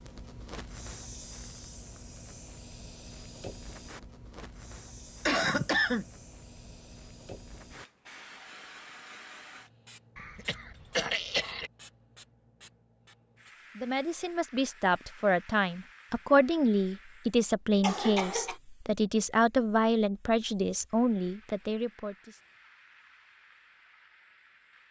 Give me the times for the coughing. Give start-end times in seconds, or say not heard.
5.2-6.0, 10.2-11.7, 17.8-18.6.